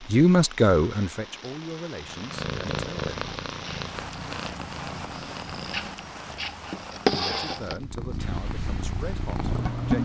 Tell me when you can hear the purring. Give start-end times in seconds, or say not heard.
2.0-10.0.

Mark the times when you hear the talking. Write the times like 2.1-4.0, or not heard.
0.1-3.3, 7.1-10.0.